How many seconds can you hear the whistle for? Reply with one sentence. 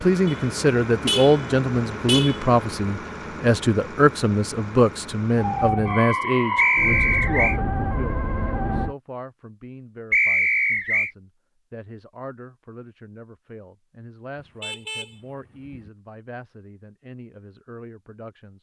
The whistle can be heard for 2 seconds in total.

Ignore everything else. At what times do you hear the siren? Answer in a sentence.
The siren can be heard from 5.3 to 8.9 s.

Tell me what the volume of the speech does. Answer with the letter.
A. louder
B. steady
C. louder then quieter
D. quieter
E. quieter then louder
D.